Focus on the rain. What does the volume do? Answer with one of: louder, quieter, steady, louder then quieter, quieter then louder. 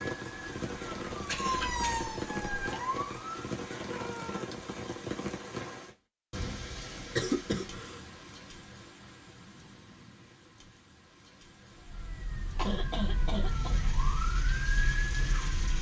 quieter then louder.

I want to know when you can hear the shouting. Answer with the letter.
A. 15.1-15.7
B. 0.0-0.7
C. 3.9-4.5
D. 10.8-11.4
C.